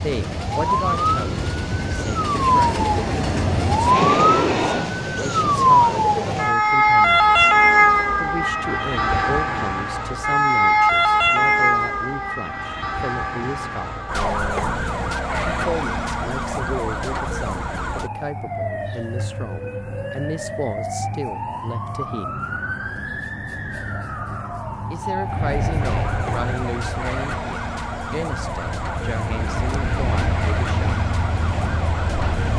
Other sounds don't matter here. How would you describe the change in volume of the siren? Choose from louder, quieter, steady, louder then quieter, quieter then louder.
quieter.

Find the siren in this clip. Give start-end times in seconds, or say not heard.
0.0-32.5.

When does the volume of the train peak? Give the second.
4 s.